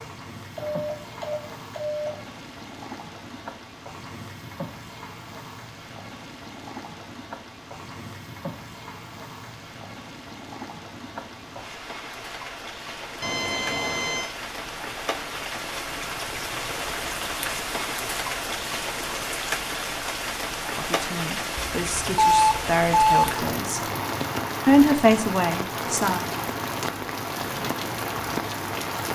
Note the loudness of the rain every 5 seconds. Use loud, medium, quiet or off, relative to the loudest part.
medium, medium, medium, loud, loud, loud.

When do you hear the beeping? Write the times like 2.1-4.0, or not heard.
0.6-2.2, 13.2-14.3, 21.6-23.4.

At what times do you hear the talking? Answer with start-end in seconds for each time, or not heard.
20.8-23.8, 24.6-26.2.